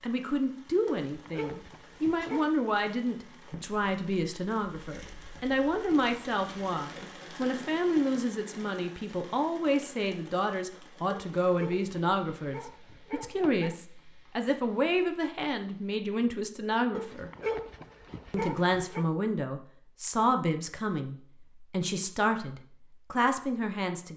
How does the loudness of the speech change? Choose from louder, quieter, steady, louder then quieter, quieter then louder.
steady.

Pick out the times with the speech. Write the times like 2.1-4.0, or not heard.
0.0-17.3, 18.3-24.1.